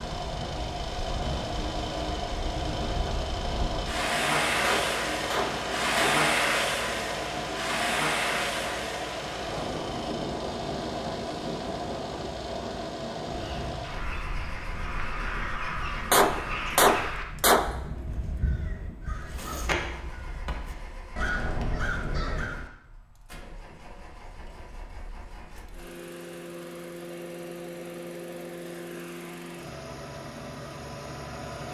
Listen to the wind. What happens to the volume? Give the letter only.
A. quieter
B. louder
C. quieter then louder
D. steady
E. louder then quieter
E.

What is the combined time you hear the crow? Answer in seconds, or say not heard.
9 s.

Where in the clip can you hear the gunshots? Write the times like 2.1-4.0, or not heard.
4.6-6.2, 16.1-17.7.